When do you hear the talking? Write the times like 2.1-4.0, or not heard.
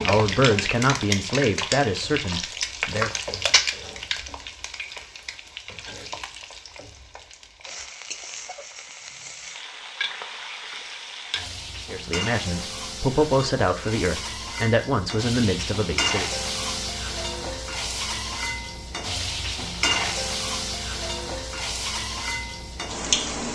0.0-3.1, 11.9-16.3.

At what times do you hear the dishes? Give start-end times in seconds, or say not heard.
not heard.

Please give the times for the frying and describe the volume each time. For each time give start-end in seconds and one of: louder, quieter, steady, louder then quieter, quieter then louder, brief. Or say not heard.
0.0-23.4 quieter then louder.